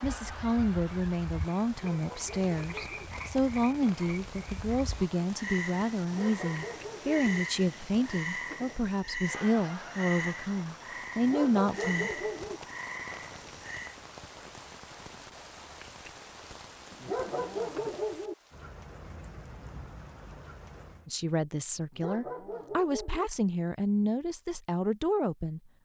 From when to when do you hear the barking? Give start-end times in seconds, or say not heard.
1.7-3.1, 6.0-7.2, 11.2-12.6, 17.0-18.4, 21.9-23.3.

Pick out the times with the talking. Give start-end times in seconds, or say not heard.
0.0-12.1, 21.1-25.6.